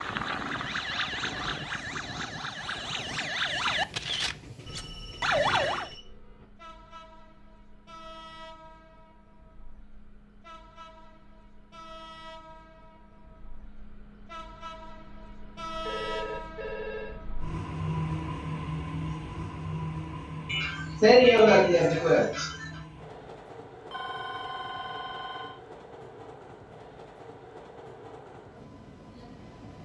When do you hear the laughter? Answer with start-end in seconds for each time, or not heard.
20.4-22.6.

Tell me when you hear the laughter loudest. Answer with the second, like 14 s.
21 s.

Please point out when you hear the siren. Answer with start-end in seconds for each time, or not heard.
0.0-5.9.